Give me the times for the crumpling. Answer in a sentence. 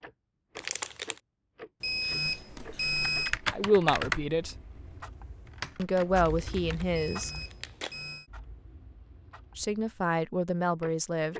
You can hear the crumpling from 0.6 to 1.2 s and from 6.3 to 8.0 s.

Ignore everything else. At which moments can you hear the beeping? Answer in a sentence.
The beeping can be heard from 1.8 to 3.4 s and from 7.0 to 8.2 s.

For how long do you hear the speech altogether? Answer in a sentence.
The speech can be heard for 4 seconds in total.